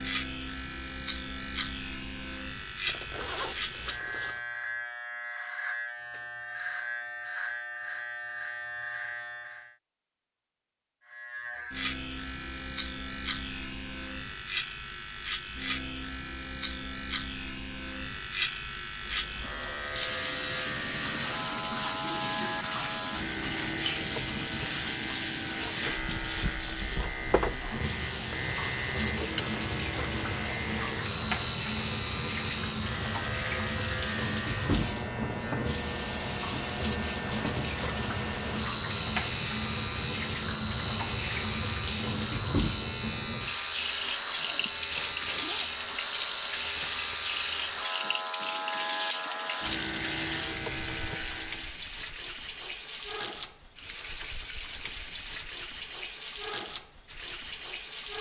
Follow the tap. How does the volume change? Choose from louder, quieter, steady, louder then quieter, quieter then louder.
steady.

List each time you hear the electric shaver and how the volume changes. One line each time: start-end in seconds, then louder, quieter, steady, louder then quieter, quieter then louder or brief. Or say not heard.
0.0-9.8 steady
11.1-51.8 steady.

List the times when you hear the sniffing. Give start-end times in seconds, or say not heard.
25.7-26.6, 44.6-45.5.